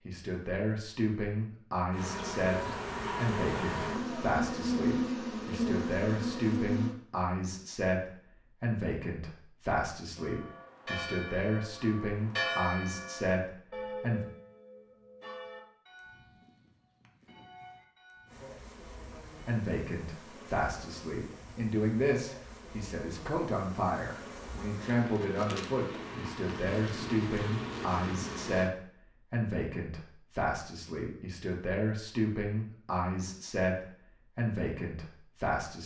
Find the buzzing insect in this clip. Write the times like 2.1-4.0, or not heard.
1.9-7.0, 18.2-28.7.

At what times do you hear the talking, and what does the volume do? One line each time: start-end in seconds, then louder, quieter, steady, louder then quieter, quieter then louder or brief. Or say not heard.
0.1-14.2 steady
19.4-35.8 steady.